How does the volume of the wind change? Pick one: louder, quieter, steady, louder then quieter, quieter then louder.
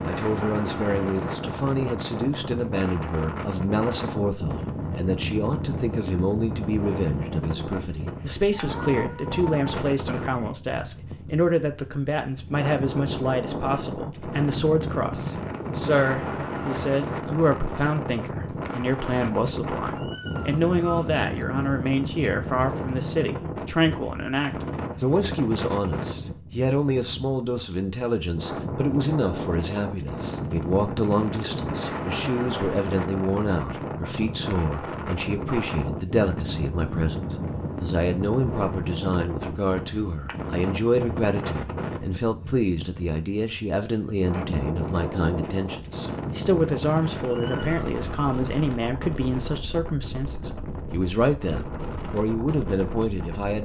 steady.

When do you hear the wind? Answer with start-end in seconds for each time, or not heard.
0.0-53.6.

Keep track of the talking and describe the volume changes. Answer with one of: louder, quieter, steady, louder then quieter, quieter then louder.
steady.